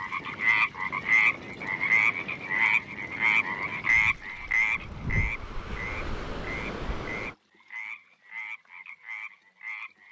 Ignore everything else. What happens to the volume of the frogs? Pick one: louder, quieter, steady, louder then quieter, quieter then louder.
quieter.